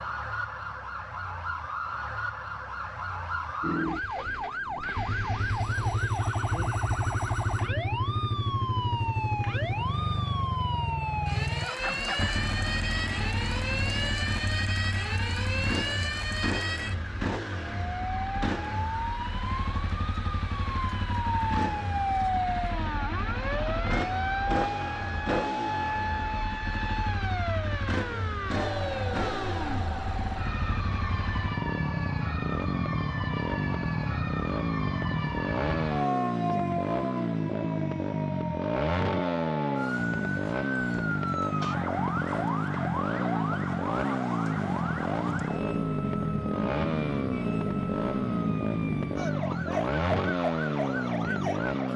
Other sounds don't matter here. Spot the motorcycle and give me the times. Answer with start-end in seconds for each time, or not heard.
3.6-51.9.